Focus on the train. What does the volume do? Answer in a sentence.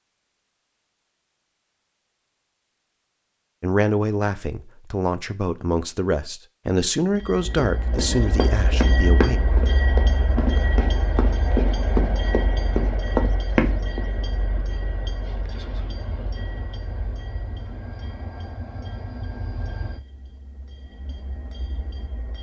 The loudness of the train goes down.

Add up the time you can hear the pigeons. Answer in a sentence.
You can't hear the pigeons here.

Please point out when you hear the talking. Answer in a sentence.
The talking can be heard from 3.6 to 9.4 s.